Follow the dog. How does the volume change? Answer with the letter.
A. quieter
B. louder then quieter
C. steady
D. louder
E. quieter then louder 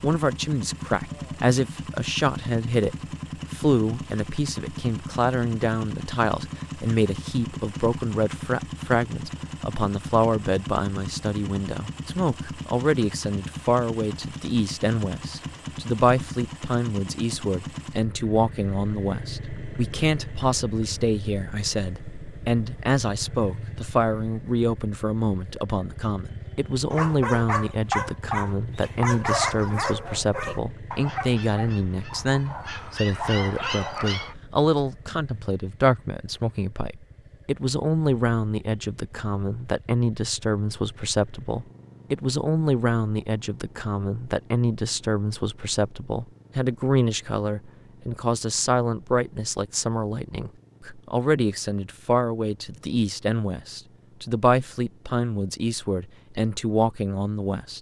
E.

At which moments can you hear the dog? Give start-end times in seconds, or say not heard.
26.9-34.4.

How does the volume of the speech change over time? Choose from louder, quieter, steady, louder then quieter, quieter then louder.
steady.